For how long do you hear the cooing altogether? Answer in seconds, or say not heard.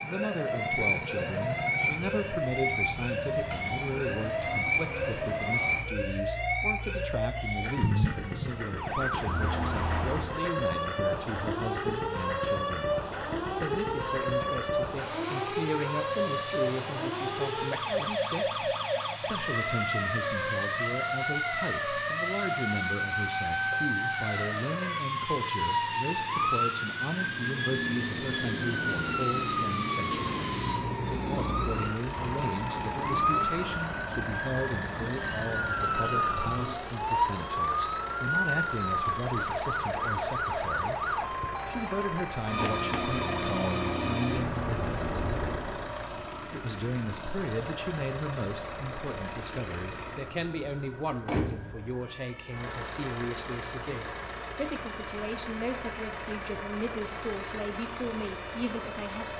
not heard.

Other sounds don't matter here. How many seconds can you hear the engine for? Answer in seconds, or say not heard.
59 s.